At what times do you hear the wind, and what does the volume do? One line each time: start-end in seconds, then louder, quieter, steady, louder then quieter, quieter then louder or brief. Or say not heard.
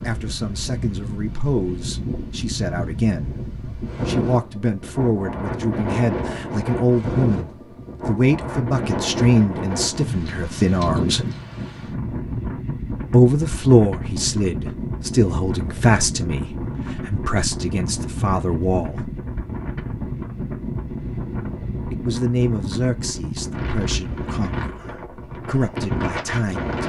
0.0-26.8 steady.